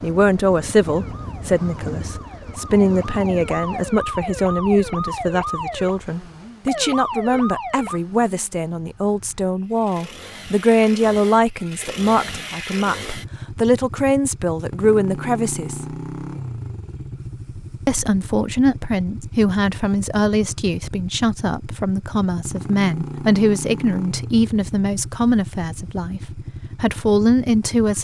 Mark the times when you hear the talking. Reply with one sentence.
You can hear the talking from 0.0 to 15.8 s, from 17.9 to 26.2 s and from 26.8 to 28.0 s.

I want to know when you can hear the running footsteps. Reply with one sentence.
You can't hear the running footsteps here.